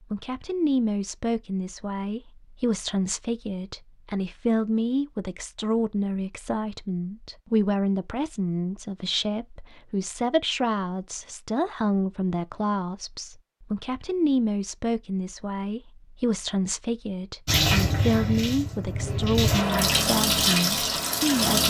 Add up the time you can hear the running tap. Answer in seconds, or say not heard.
4 s.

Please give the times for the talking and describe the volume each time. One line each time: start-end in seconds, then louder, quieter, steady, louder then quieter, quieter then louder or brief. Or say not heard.
0.1-21.6 steady.